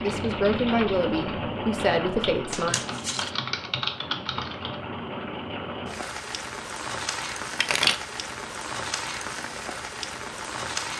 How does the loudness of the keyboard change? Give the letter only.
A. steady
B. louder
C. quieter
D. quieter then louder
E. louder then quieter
D.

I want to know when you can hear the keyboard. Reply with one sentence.
You can hear the keyboard from 0.0 to 4.8 s.